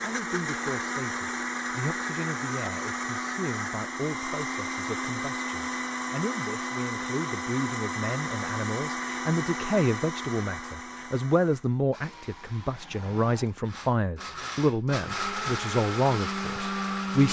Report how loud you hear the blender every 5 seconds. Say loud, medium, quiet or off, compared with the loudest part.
loud, loud, medium, loud.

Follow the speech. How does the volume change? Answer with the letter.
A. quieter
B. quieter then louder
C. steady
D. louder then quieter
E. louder
E.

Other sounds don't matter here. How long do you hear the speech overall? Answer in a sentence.
You can hear the speech for 17 seconds altogether.